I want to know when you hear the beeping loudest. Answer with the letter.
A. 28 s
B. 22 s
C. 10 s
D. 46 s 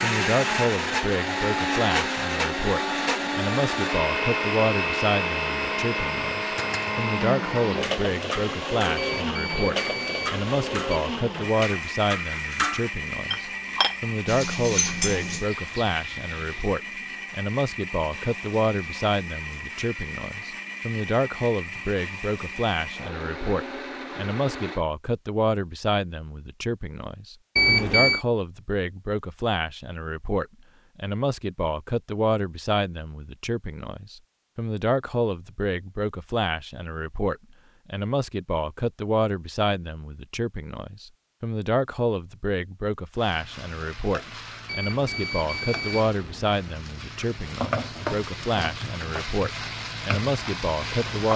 A.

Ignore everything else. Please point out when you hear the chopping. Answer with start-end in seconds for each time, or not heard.
not heard.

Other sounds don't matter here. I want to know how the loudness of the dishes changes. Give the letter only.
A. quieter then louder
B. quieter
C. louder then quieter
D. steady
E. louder
E.